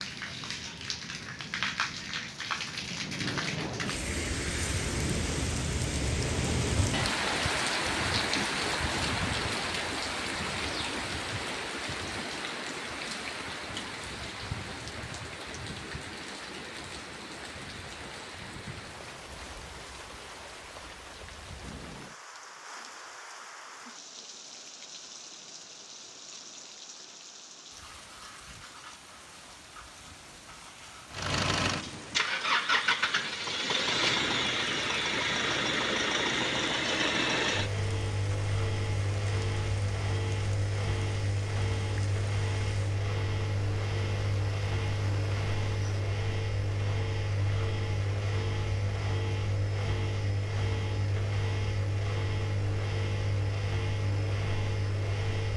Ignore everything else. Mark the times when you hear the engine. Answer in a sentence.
You can hear the engine from 31.1 to 55.5 s.